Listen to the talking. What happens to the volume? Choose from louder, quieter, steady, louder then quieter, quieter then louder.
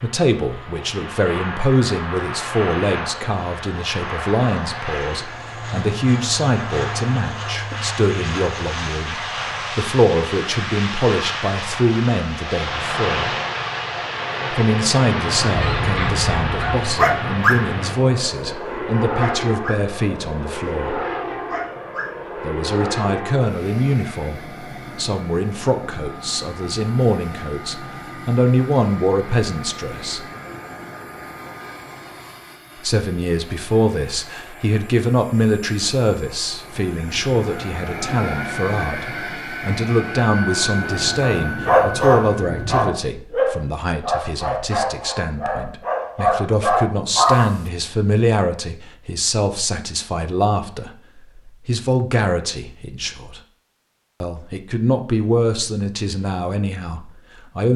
steady.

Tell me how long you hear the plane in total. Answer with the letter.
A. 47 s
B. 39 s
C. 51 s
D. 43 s
D.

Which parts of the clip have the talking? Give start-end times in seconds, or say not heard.
0.0-13.3, 14.5-21.0, 22.4-30.2, 32.8-53.4, 54.2-57.7.